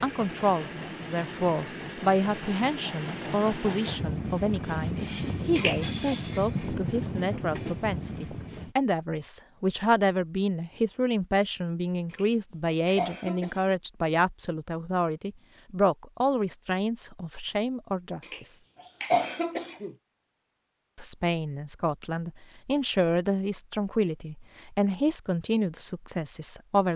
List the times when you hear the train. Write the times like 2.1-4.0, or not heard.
0.0-8.8.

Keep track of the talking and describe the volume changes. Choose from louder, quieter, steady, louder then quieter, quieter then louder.
steady.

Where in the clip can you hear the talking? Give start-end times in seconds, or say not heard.
0.0-18.6, 20.9-26.9.